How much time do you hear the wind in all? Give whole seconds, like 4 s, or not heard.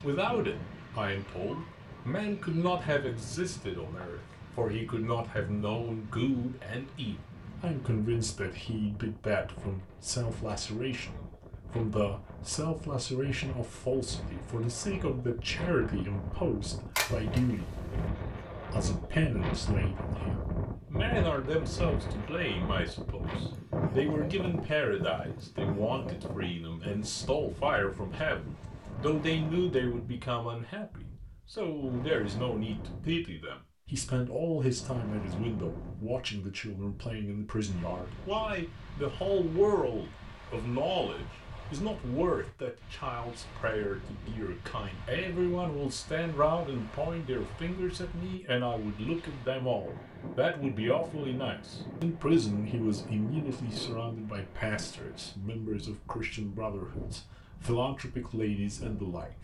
59 s.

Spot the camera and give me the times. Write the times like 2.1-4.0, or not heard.
16.9-18.1.